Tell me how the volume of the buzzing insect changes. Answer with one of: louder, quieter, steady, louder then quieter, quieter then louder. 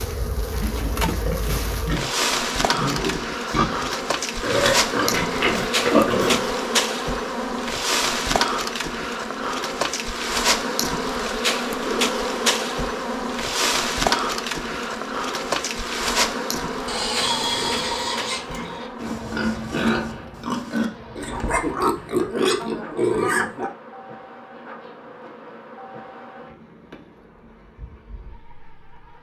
quieter.